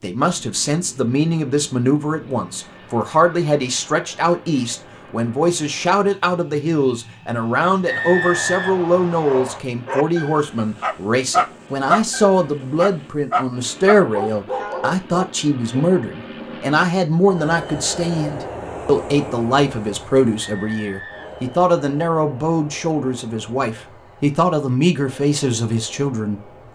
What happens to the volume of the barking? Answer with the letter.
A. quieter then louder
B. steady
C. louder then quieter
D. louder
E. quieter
C.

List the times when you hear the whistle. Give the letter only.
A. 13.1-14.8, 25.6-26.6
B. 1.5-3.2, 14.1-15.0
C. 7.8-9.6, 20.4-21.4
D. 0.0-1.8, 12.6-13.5
C.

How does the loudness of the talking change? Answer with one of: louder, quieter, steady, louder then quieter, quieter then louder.
steady.